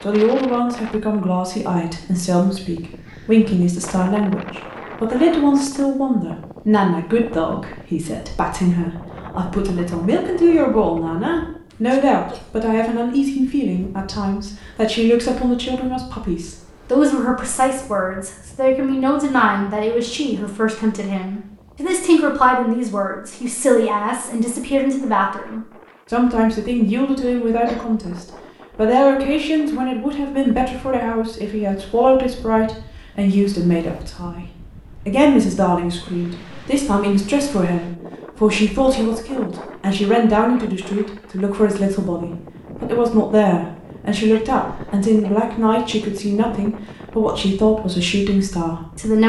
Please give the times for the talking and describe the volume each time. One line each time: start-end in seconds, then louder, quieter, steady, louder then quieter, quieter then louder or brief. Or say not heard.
0.0-34.5 steady
35.0-49.2 steady.